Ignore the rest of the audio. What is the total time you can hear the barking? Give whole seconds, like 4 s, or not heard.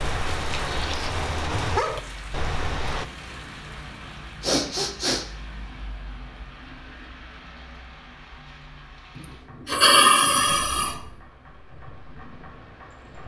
3 s.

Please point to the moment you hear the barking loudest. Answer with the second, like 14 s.
2 s.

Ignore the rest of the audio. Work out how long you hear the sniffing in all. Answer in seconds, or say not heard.
3 s.